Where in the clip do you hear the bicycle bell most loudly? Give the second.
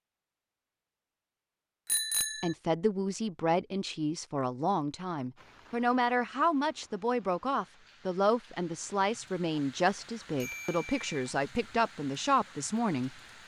2 s.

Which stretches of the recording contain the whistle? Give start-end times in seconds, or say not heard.
not heard.